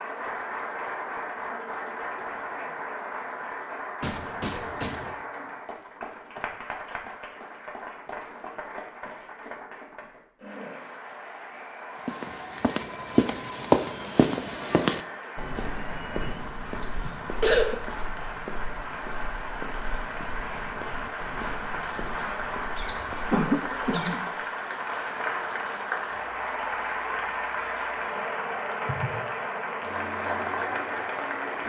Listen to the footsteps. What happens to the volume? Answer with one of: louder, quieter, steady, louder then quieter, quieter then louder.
quieter.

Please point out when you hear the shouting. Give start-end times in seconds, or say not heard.
not heard.